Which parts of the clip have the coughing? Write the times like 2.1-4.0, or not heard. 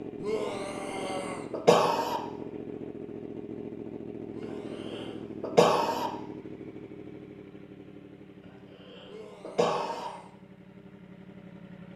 0.9-2.2, 4.8-6.1, 8.8-10.1.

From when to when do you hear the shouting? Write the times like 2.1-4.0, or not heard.
0.2-1.5, 4.3-5.2, 9.1-10.3.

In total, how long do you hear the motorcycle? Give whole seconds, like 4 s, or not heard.
12 s.